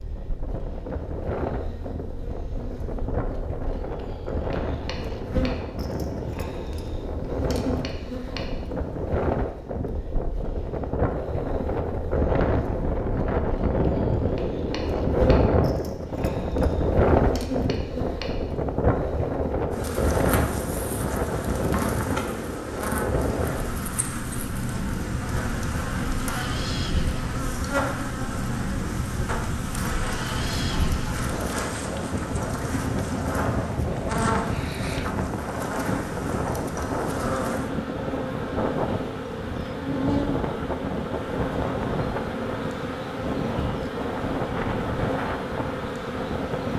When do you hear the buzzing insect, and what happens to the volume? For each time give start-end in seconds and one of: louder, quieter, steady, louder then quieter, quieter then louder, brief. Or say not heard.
0.0-46.7 louder.